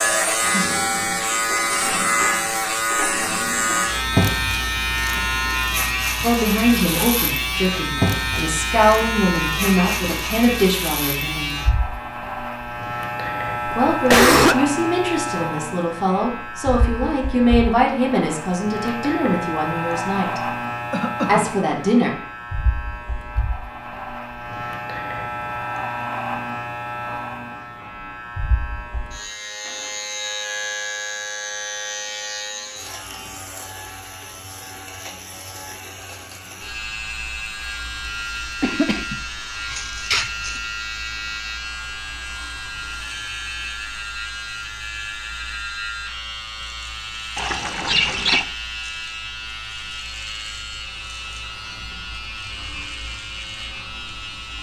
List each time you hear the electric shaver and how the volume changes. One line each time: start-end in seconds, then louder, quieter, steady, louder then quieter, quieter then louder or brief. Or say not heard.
0.0-54.5 quieter.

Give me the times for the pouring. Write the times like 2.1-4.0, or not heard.
47.4-48.5.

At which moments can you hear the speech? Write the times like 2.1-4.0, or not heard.
6.2-11.6, 13.8-20.6, 21.2-22.1.